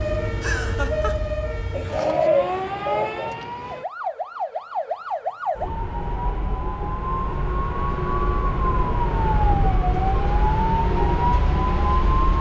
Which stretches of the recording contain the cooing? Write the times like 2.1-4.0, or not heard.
1.7-3.3.